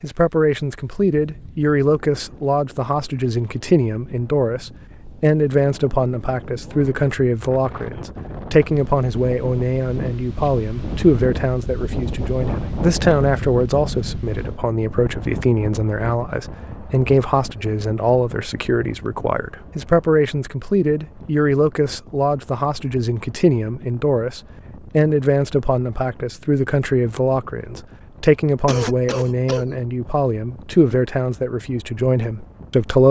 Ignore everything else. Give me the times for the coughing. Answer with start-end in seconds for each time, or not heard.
28.6-29.8.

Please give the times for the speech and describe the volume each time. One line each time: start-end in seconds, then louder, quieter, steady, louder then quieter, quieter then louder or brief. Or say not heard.
0.0-33.0 steady.